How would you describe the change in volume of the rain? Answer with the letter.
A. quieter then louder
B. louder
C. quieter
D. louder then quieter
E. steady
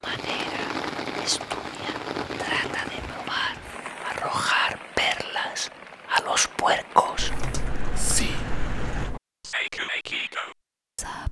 A.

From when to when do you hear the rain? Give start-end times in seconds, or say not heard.
0.0-9.2.